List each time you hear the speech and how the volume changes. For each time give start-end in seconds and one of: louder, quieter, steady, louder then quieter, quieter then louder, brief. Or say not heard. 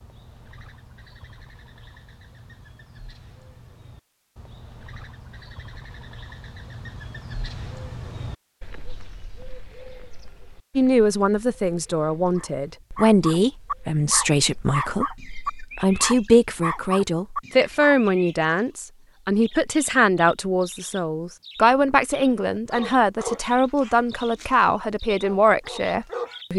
10.8-26.5 steady.